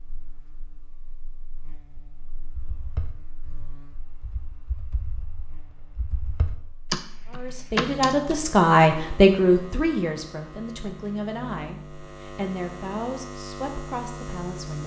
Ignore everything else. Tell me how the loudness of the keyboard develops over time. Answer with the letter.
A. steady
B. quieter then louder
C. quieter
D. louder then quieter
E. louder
B.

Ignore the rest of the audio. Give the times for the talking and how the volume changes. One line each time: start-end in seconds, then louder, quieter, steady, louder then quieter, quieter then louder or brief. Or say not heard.
7.3-14.8 quieter.